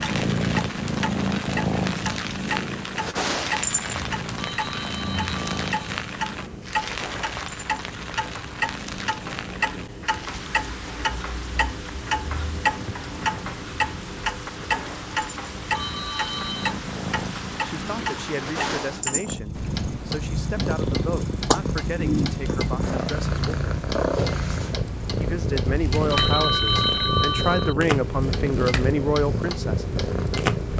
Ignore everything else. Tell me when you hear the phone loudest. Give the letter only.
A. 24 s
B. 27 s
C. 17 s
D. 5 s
B.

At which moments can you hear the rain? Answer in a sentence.
The rain can be heard from 0.0 to 18.8 s.